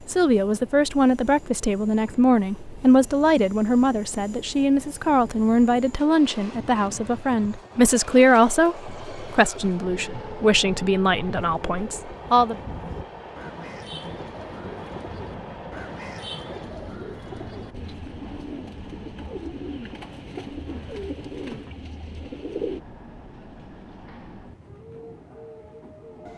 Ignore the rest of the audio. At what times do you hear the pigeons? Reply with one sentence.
You can hear the pigeons from 11.3 to 22.8 s.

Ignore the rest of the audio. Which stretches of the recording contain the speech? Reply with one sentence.
You can hear the speech from 0.1 to 12.6 s.